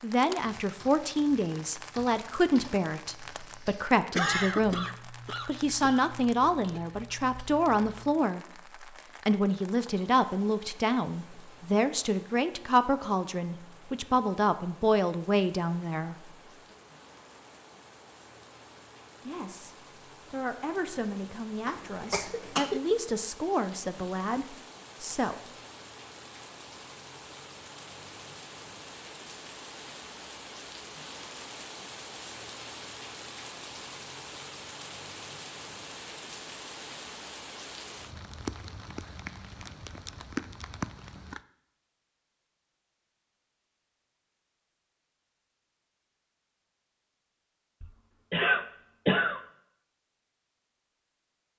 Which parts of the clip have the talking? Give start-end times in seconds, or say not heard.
0.0-16.3, 19.2-25.4.